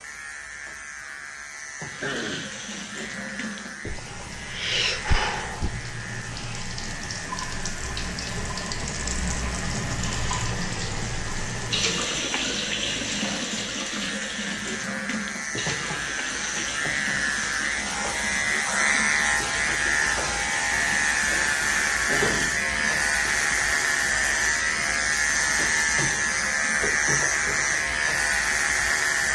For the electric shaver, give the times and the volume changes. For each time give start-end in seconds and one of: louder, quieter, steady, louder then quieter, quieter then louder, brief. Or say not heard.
0.0-29.2 louder.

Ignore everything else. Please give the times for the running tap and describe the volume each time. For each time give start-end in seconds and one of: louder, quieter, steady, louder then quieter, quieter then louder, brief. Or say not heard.
1.8-26.9 quieter.